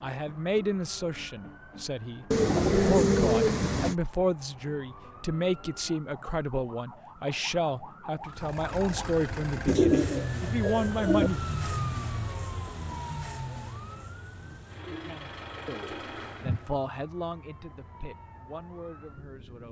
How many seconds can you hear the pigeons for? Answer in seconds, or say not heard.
5 s.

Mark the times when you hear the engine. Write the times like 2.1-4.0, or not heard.
8.2-16.8.